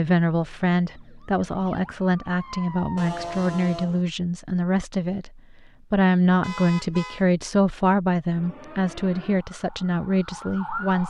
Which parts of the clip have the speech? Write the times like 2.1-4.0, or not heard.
0.0-11.0.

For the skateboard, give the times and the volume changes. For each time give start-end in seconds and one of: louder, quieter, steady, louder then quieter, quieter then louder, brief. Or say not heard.
not heard.